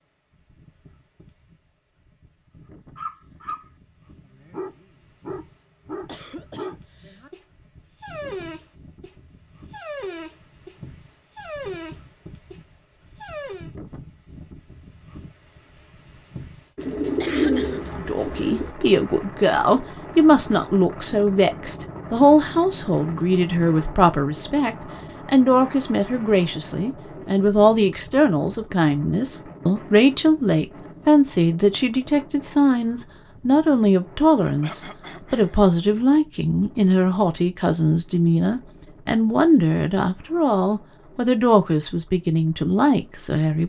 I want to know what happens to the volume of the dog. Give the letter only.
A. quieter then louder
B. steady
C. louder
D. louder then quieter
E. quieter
B.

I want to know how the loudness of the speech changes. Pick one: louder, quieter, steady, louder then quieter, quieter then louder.
steady.